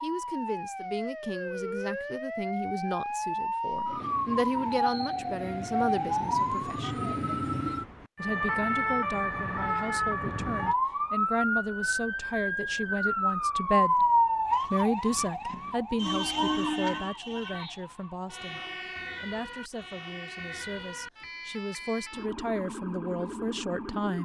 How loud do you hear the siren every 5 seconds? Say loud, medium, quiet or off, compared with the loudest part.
medium, loud, loud, medium, quiet.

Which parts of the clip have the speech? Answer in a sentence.
The speech can be heard from 0.0 to 7.0 s, from 8.2 to 14.1 s and from 14.7 to 24.2 s.